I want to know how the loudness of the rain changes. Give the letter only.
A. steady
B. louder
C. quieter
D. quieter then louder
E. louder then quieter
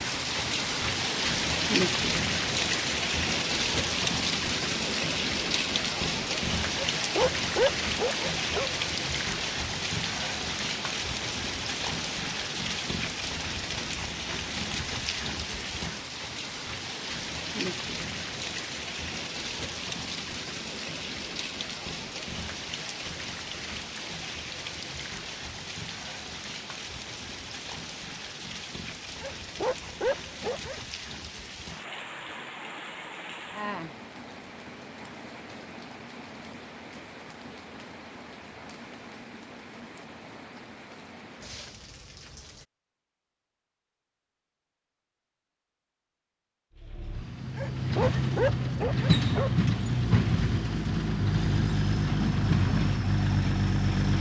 C.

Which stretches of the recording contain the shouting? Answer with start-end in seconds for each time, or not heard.
not heard.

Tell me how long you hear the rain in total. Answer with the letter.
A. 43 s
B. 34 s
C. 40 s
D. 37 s
A.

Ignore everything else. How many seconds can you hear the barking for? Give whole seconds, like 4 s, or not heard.
6 s.